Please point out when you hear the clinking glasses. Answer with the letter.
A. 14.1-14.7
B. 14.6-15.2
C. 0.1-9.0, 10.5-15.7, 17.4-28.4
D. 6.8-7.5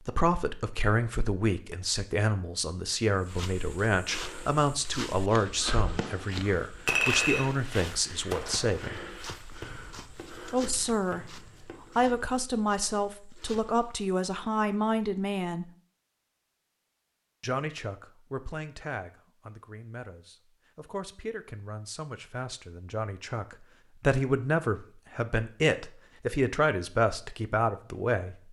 D.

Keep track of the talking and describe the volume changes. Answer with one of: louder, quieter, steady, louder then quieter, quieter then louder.
quieter then louder.